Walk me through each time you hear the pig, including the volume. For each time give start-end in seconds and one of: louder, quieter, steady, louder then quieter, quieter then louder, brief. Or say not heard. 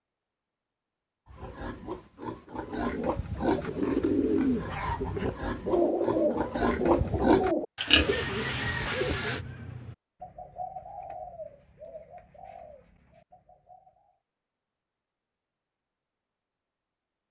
1.3-9.4 louder.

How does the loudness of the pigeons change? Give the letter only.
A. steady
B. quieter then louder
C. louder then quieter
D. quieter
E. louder
D.